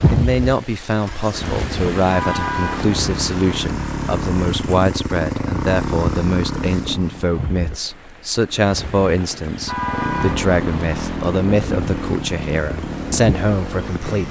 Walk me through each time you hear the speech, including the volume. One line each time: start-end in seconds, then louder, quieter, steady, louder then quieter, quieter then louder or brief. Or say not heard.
0.1-14.2 steady.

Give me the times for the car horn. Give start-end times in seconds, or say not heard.
2.1-3.6, 9.7-11.2.